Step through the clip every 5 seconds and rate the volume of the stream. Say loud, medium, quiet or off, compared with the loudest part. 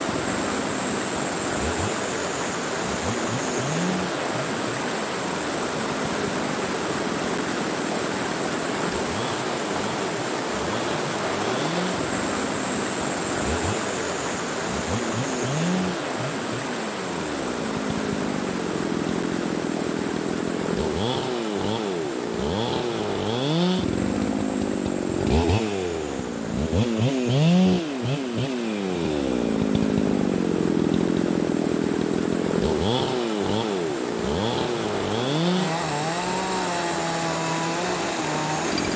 loud, loud, loud, loud, medium, medium, medium, loud.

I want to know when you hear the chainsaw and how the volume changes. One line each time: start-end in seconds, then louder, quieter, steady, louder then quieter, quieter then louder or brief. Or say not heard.
0.0-38.9 louder.